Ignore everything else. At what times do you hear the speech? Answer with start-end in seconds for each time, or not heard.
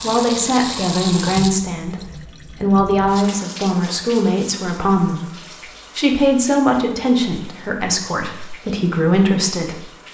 0.0-1.9, 2.5-9.8.